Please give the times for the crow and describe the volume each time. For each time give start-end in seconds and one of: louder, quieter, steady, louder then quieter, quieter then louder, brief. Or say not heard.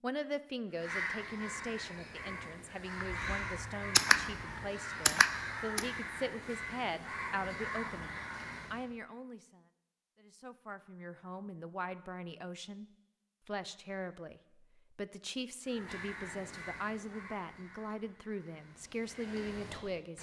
0.7-8.8 steady
15.7-20.1 quieter then louder.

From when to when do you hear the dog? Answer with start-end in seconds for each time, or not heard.
not heard.